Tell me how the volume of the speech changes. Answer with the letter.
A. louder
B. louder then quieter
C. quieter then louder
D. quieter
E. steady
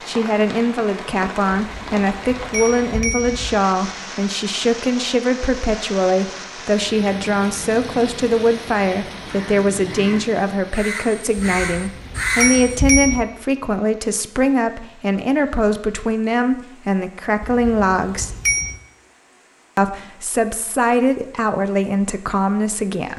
E.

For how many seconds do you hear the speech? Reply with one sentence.
The speech can be heard for 22 seconds in total.